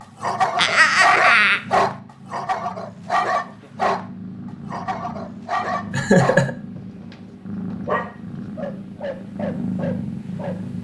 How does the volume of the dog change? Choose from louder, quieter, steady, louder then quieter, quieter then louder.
quieter.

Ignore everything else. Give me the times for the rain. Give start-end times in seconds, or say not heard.
not heard.